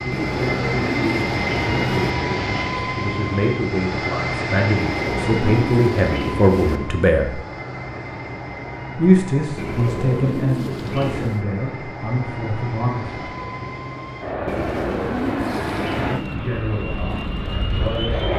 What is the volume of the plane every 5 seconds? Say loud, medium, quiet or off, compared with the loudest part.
loud, medium, medium, loud.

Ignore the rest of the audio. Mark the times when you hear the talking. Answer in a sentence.
The talking can be heard from 0.0 to 7.4 s, from 8.9 to 13.2 s and from 16.0 to 18.2 s.